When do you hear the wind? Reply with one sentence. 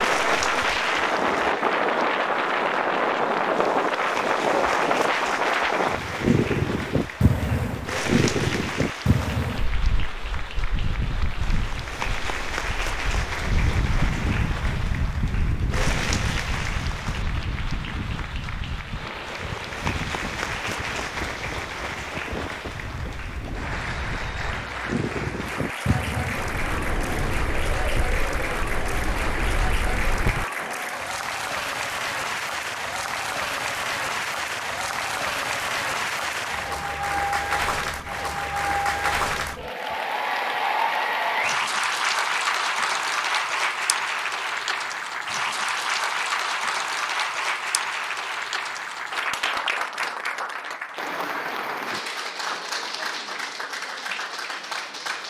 The wind can be heard from 0.0 to 30.4 s.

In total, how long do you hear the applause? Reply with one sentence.
The applause can be heard for 55 seconds in total.